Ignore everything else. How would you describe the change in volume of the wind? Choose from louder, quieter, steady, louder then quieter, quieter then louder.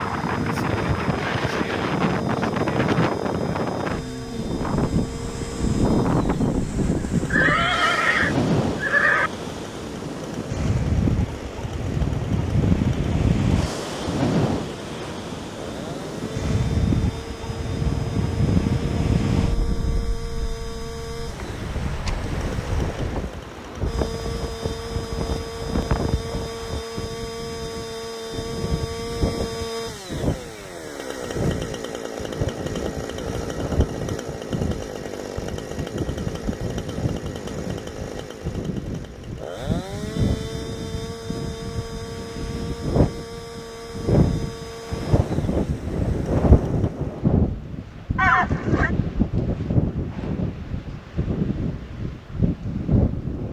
quieter then louder.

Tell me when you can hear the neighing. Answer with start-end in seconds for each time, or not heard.
7.3-9.3, 48.1-48.9.